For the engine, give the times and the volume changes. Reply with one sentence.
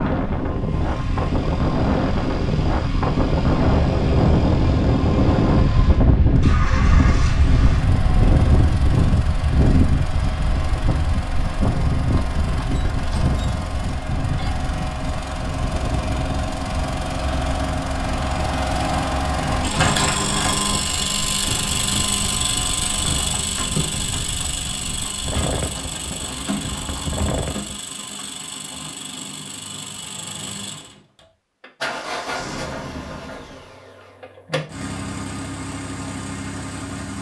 You can hear the engine from 0.0 to 37.1 s, getting louder then quieter.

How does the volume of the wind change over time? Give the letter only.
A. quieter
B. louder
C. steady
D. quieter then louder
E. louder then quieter
A.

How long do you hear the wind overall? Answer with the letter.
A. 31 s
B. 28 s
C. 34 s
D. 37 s
B.